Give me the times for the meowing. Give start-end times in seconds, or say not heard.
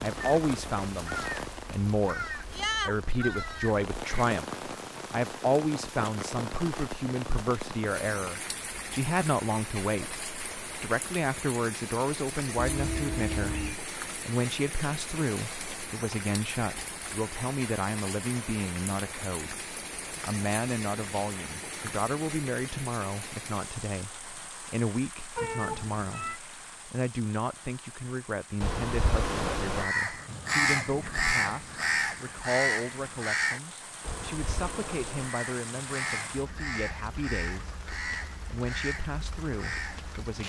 12.6-13.8, 25.4-26.4.